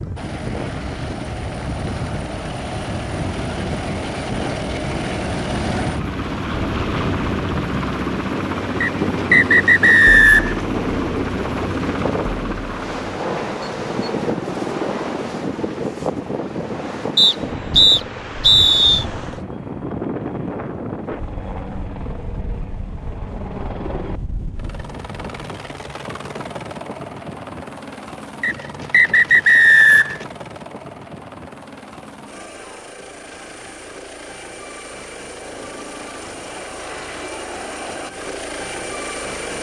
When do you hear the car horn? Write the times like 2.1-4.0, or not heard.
not heard.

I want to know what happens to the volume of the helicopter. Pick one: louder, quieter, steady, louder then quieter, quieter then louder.
quieter.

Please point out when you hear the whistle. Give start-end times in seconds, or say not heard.
8.8-10.6, 17.1-19.1, 28.4-30.2.